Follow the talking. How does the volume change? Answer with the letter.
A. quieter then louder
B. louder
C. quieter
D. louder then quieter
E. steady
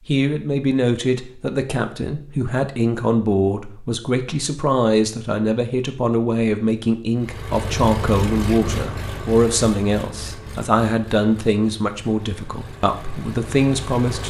E.